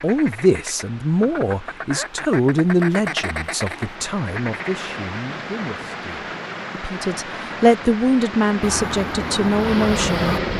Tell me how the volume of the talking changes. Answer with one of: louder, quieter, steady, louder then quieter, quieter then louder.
quieter then louder.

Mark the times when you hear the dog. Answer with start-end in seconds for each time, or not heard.
not heard.